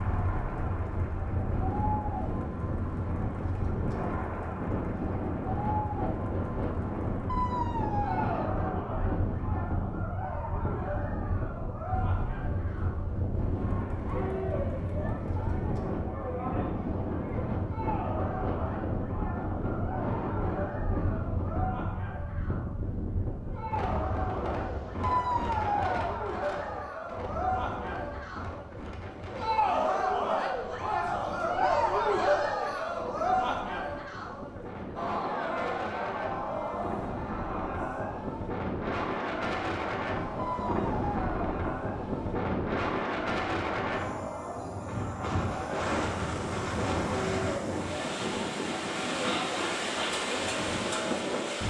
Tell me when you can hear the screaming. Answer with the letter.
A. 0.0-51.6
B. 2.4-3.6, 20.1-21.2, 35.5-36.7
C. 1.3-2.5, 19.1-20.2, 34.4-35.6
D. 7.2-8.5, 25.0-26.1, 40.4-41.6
D.